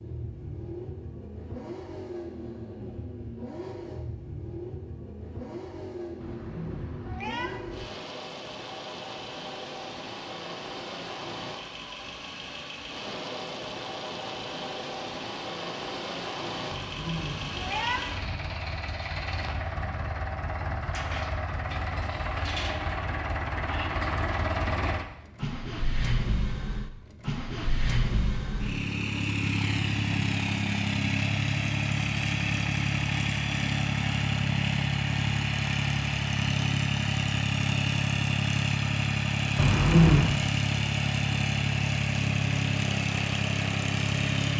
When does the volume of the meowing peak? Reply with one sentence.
The loudest moment of the meowing is at 40 seconds.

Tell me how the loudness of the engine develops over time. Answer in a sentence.
The volume of the engine goes up.